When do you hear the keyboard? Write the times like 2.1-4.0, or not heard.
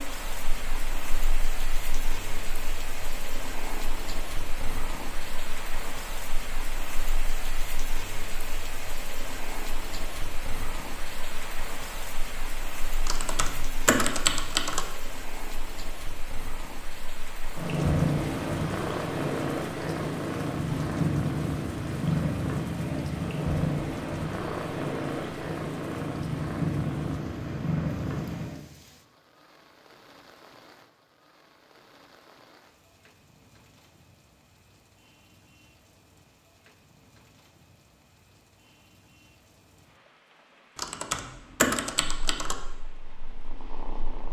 13.1-14.8, 40.8-42.5.